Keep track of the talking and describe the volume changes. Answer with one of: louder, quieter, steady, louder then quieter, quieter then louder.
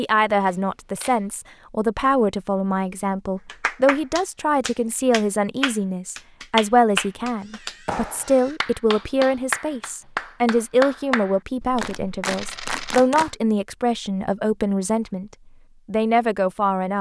steady.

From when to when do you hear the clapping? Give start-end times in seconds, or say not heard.
3.5-13.3.